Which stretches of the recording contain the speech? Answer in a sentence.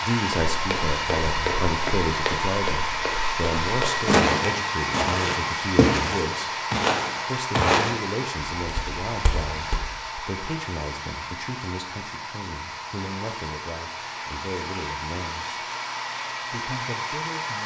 You can hear the speech from 0.0 to 6.7 s, from 7.2 to 15.7 s and from 16.5 to 17.6 s.